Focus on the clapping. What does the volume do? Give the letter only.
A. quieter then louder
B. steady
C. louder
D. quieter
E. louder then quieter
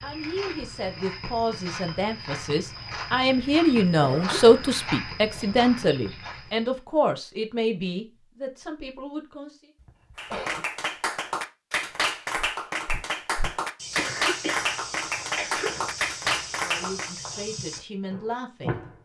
B.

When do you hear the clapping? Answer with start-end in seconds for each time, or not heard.
10.2-17.2.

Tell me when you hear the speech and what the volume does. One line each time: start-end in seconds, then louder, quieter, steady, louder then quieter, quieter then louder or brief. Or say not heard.
0.0-9.7 louder then quieter
16.6-18.8 brief.